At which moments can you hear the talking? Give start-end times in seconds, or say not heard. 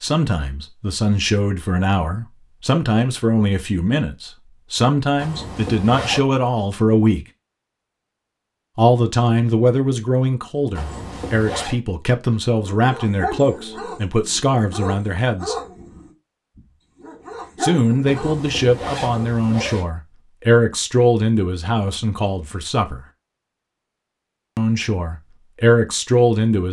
0.0-7.2, 8.8-15.6, 17.6-23.0, 24.6-26.6.